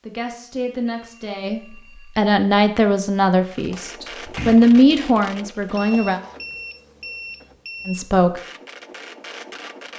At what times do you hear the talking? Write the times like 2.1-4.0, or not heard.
0.1-6.2, 7.8-8.4.